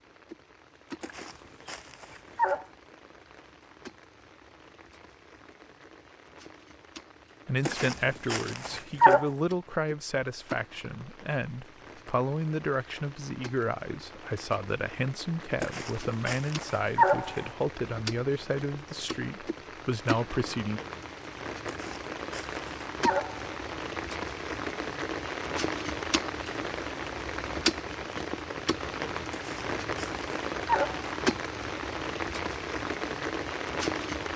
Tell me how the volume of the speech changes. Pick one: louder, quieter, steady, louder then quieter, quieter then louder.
steady.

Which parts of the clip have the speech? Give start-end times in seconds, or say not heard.
7.5-20.8.